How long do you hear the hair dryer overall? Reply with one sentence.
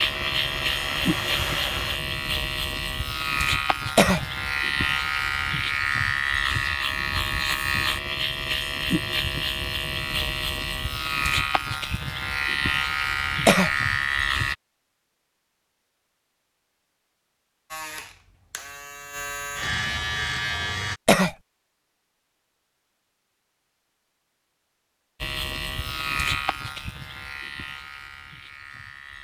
You can hear the hair dryer for 2 seconds altogether.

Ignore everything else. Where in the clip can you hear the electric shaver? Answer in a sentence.
You can hear the electric shaver from 0.0 to 14.6 s, from 17.7 to 21.0 s and from 25.2 to 29.2 s.